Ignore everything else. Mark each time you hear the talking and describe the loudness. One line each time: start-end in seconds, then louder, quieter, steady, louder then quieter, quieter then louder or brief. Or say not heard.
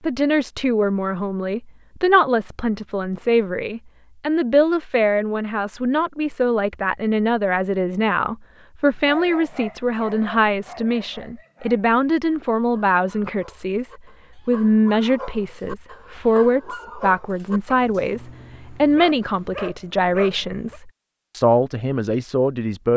0.0-22.9 steady.